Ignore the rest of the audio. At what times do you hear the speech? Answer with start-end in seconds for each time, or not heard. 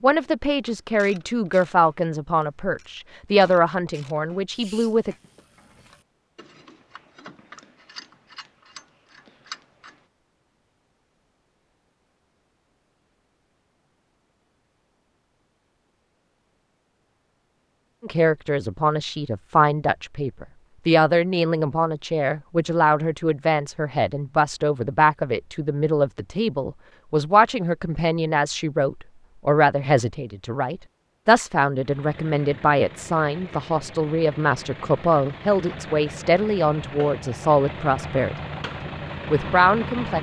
0.0-5.2, 18.0-40.1.